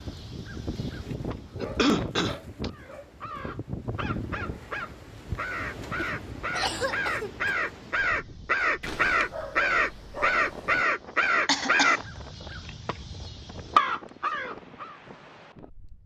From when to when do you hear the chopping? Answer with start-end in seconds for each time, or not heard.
not heard.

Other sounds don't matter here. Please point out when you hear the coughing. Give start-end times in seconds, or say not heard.
1.6-2.7, 6.0-7.5, 11.4-12.1.